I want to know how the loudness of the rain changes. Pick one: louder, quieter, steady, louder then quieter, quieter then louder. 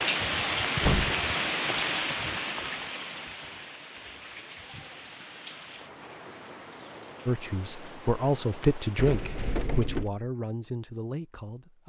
quieter.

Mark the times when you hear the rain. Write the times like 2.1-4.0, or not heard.
0.0-9.7.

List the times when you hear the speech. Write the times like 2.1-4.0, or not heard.
7.2-11.8.